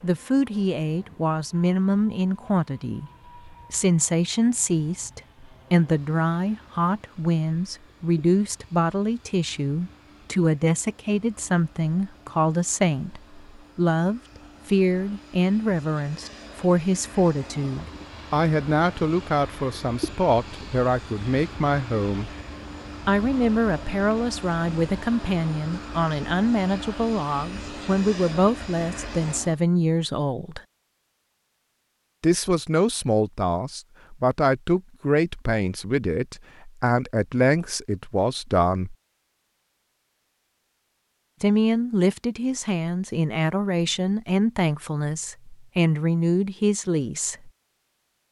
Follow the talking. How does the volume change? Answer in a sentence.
The loudness of the talking stays about the same.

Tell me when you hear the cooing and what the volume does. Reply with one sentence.
The cooing can't be heard in this clip.